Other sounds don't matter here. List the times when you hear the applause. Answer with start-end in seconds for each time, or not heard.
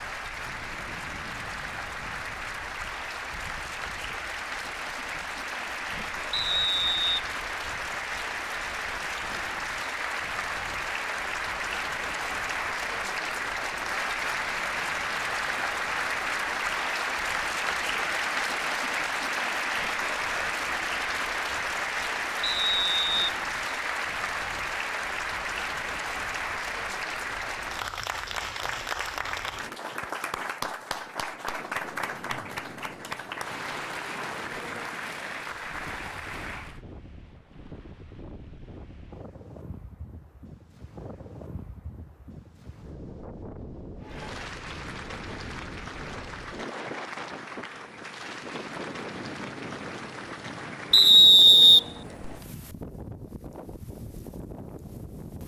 0.0-36.8, 44.0-51.4.